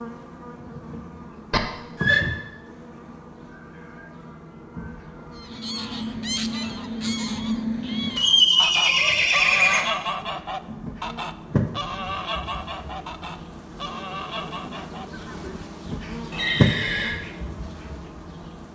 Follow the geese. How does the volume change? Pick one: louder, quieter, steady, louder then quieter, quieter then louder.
quieter.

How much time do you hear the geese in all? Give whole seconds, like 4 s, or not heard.
10 s.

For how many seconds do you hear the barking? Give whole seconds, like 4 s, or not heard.
not heard.